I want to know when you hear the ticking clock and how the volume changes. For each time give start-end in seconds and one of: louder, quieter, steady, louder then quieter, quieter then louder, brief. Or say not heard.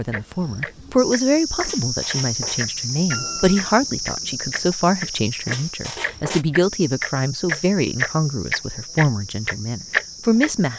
0.1-10.5 louder.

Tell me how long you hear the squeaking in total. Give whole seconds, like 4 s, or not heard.
2 s.